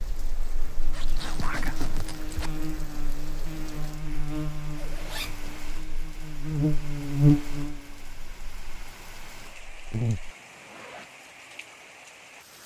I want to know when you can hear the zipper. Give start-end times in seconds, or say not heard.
0.9-2.5, 4.8-5.6, 10.2-11.1.